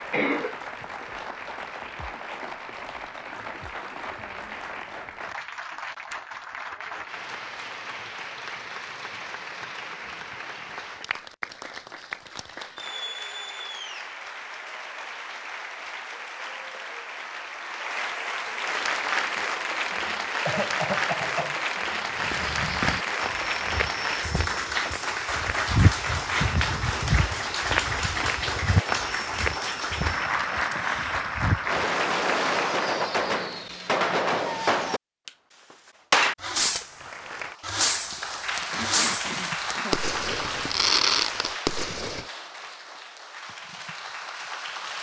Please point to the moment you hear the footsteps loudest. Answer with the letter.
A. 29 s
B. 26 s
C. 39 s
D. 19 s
B.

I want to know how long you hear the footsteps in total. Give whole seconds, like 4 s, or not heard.
10 s.